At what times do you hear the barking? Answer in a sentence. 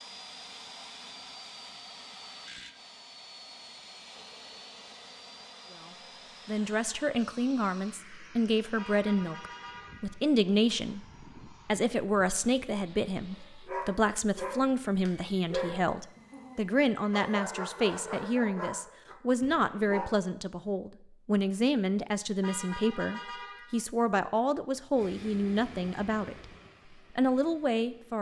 The barking can be heard from 13.7 to 20.1 s.